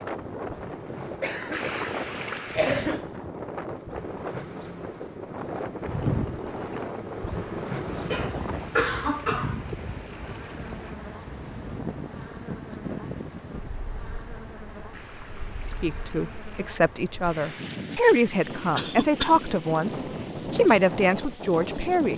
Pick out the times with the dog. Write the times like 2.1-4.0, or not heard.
not heard.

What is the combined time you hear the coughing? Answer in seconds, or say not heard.
4 s.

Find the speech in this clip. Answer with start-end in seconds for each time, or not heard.
15.7-22.1.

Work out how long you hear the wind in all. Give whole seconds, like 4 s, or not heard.
22 s.